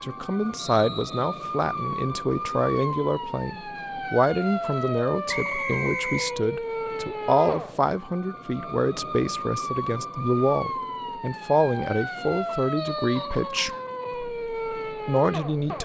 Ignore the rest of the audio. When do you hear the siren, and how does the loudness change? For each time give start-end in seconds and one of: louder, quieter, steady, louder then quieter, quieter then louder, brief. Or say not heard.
0.0-15.7 steady.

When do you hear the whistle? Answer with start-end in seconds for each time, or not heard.
0.6-1.4, 5.2-6.3, 12.8-13.9.